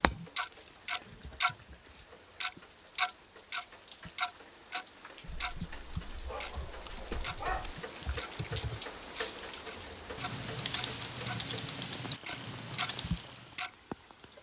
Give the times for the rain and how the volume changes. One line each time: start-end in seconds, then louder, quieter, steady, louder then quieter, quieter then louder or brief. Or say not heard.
0.0-14.3 louder then quieter.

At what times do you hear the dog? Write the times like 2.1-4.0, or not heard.
5.2-7.8.